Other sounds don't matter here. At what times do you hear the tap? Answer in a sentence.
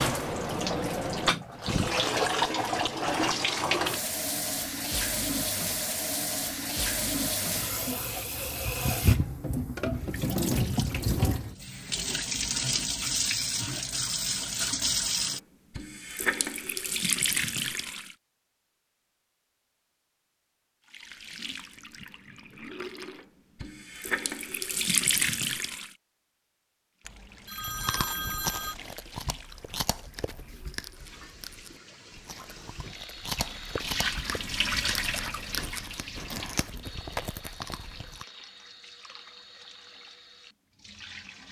The tap can be heard from 0.0 to 18.1 s, from 20.9 to 25.9 s and from 27.0 to 41.4 s.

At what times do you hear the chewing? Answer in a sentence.
The chewing can be heard from 27.6 to 38.2 s.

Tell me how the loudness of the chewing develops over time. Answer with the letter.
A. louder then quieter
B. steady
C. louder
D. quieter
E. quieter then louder
E.